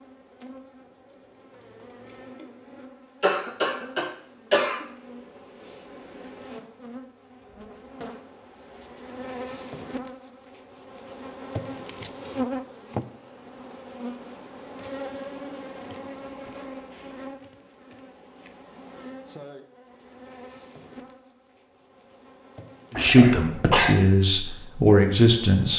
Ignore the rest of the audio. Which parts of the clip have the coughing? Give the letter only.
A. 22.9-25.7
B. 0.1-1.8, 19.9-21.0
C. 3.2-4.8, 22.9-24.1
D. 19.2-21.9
C.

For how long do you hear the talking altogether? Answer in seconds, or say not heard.
3 s.